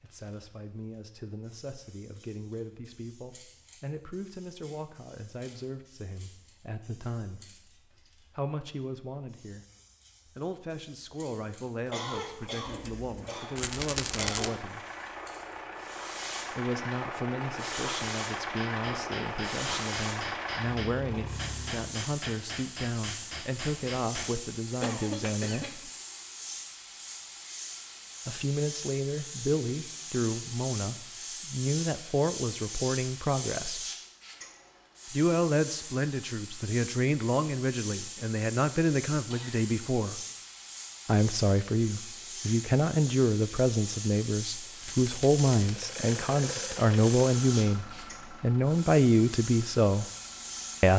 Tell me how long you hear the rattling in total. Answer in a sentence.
The rattling can be heard for 2 seconds in total.